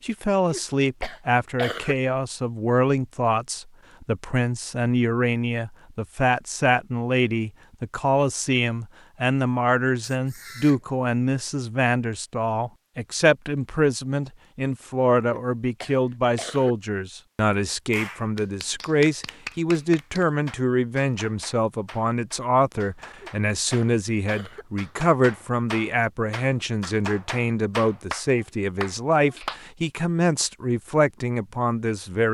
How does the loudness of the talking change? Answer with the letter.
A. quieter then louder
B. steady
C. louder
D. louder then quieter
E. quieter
B.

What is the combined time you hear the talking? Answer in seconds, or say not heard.
32 s.